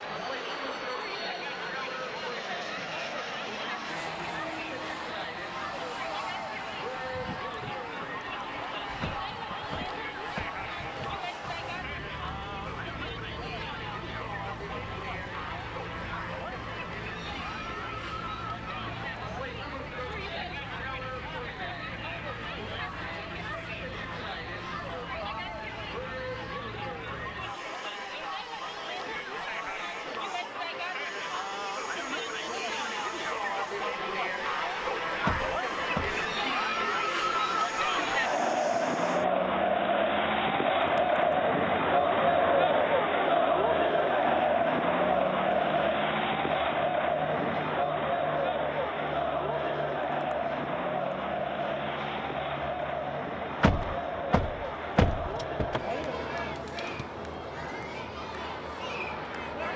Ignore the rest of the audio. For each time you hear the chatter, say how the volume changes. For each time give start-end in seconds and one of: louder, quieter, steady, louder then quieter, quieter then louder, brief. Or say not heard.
0.0-59.7 louder then quieter.